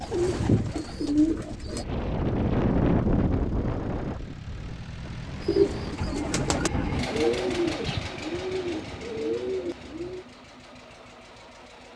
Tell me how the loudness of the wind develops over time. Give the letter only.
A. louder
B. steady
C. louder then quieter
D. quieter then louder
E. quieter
C.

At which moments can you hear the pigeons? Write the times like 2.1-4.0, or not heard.
0.0-1.9, 5.4-10.2.